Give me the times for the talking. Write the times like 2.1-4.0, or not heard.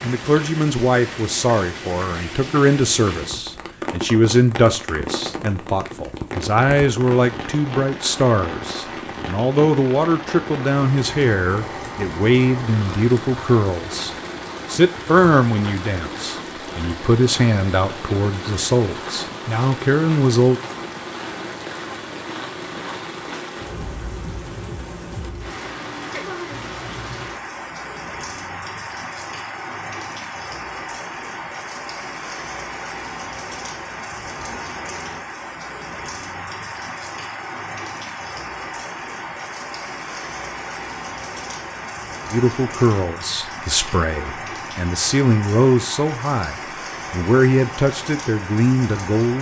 0.0-20.6, 42.3-49.3.